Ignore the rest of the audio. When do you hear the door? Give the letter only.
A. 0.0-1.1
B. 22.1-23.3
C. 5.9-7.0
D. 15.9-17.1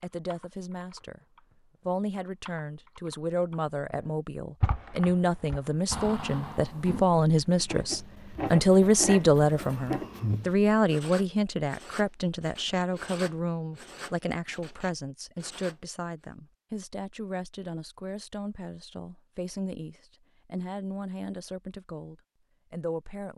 C.